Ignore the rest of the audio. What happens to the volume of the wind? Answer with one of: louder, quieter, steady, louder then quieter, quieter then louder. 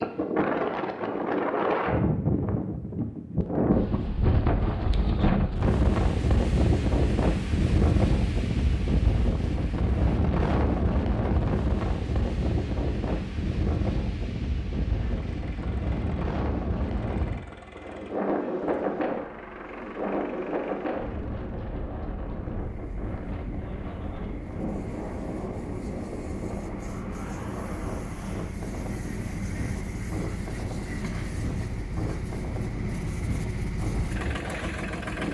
quieter.